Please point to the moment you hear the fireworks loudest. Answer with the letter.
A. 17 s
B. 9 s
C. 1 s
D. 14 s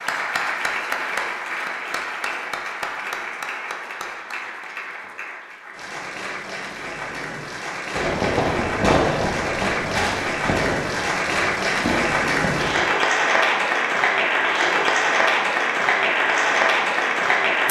B.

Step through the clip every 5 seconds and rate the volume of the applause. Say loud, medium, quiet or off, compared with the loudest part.
medium, medium, loud, loud.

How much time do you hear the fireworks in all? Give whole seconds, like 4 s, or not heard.
5 s.